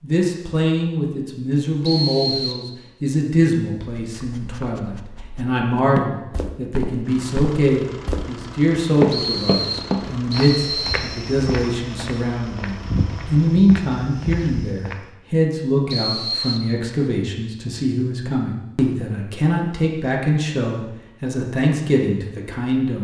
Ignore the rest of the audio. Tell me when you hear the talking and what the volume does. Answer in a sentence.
You can hear the talking from 0.0 to 22.9 s, at a steady volume.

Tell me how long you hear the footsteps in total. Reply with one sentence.
You can hear the footsteps for 9 seconds altogether.